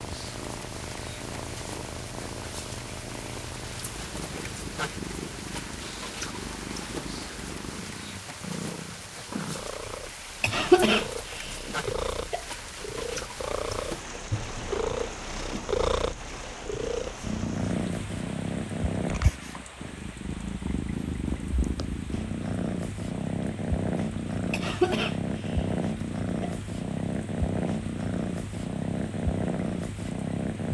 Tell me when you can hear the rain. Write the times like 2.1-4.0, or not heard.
0.0-30.6.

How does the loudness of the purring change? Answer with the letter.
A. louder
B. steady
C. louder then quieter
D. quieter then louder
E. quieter
A.